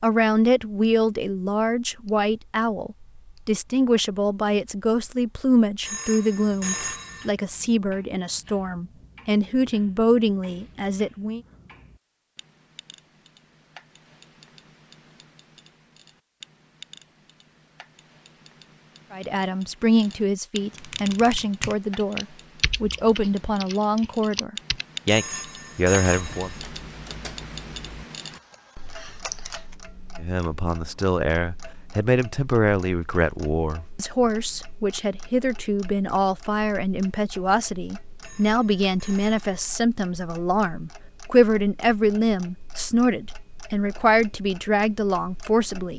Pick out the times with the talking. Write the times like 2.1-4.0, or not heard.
0.0-11.4, 19.1-26.5, 30.2-45.9.